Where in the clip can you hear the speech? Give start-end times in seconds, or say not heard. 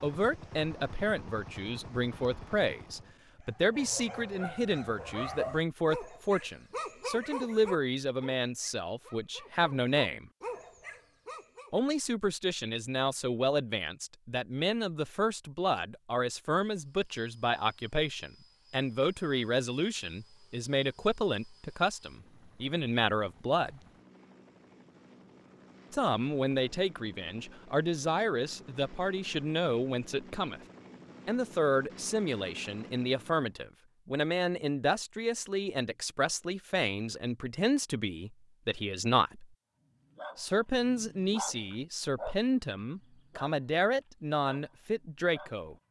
0.0-10.3, 11.7-23.8, 25.9-30.6, 31.2-39.5, 40.4-45.8.